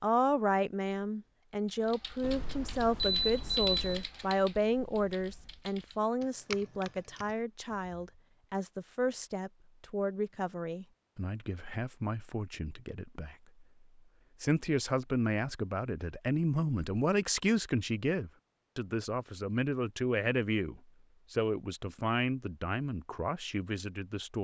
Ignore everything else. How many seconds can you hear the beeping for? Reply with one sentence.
The beeping can be heard for 2 seconds in total.